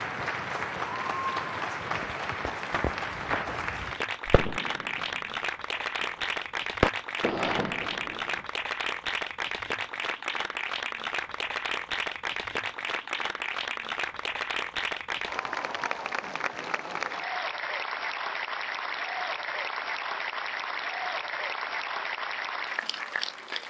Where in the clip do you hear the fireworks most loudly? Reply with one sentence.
The volume of the fireworks peaks at 7 seconds.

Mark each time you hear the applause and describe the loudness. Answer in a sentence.
You can hear the applause from 0.0 to 23.6 s, at a steady volume.